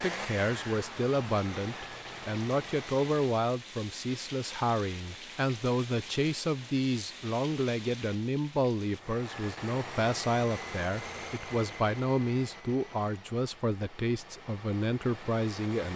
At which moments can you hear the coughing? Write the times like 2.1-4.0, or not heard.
not heard.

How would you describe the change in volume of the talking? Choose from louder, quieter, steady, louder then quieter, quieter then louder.
steady.